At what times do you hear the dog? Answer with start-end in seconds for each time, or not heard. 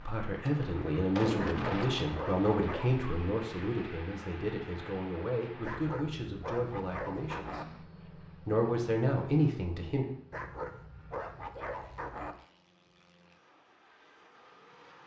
1.4-3.0, 5.6-7.7, 10.3-12.3.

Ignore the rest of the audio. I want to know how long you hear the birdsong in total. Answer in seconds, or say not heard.
not heard.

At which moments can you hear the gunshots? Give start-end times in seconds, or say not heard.
0.5-2.4.